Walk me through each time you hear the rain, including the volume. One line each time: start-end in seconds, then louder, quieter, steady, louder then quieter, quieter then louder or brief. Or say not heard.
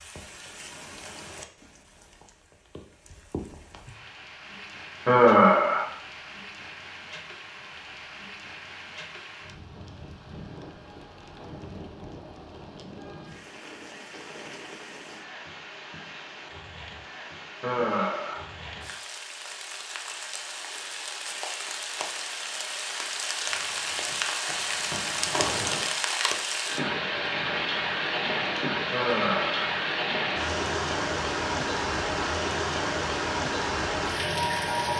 0.0-34.9 louder.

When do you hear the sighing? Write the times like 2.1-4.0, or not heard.
5.0-5.8, 17.6-18.4, 28.9-29.7.